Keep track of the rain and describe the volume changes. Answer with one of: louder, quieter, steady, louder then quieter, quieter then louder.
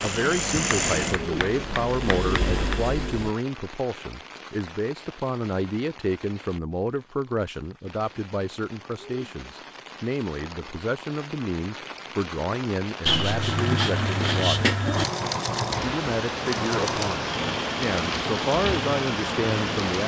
quieter then louder.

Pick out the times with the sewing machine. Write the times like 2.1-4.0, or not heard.
0.0-3.3, 14.9-19.9.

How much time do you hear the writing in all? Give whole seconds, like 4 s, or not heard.
4 s.